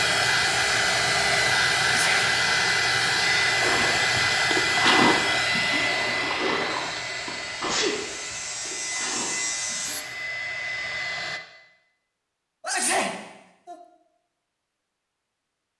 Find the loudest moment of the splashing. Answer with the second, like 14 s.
5 s.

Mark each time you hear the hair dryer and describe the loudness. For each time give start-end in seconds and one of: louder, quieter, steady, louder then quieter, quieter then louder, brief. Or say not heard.
0.0-11.4 quieter.